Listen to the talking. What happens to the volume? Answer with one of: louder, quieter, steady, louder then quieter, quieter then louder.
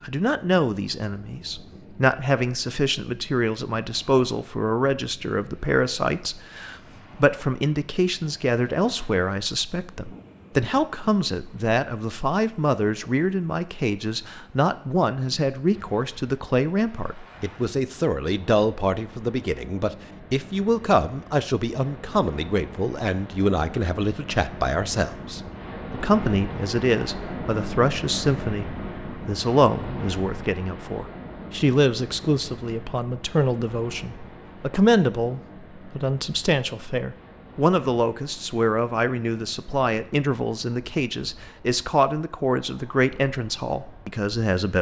steady.